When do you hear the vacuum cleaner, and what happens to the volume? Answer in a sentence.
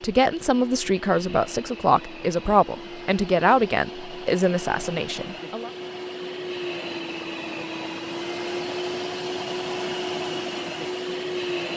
The vacuum cleaner can be heard from 0.0 to 11.7 s, getting louder.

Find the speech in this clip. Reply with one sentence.
You can hear the speech from 0.0 to 5.7 s.